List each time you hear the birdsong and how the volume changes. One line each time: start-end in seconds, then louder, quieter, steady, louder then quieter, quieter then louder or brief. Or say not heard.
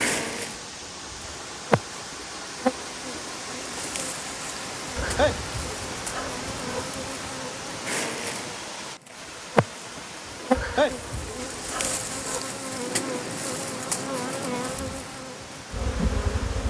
not heard.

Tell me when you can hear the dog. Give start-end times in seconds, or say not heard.
5.0-6.8, 10.5-12.4.